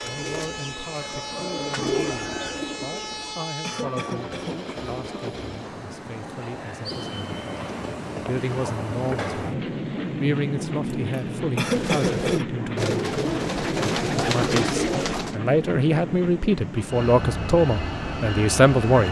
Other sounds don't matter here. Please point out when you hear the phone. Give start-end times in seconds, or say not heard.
not heard.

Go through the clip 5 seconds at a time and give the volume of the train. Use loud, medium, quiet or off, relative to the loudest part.
medium, loud, loud, loud.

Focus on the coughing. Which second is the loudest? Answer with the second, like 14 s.
12 s.